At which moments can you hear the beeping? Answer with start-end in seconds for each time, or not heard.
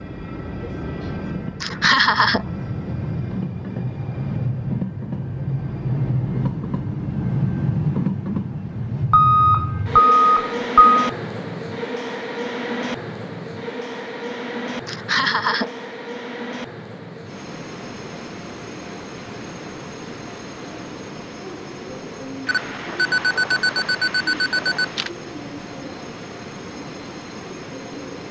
9.1-11.1, 22.4-25.1.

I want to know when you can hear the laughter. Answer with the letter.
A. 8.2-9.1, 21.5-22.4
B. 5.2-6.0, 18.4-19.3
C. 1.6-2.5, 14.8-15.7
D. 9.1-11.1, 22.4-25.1
C.